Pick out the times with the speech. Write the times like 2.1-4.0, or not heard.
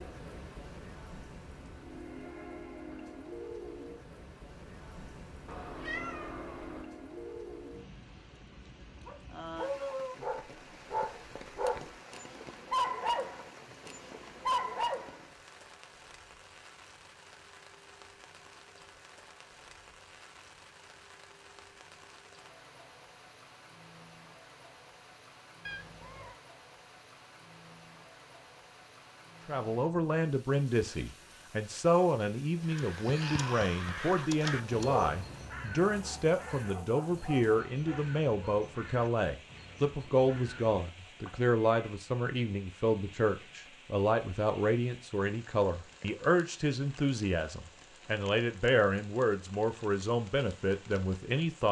29.4-51.6.